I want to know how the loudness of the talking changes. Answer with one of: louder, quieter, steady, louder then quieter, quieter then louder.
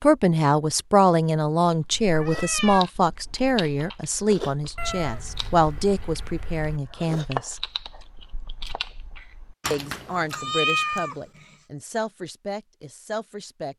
quieter.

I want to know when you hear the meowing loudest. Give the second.
11 s.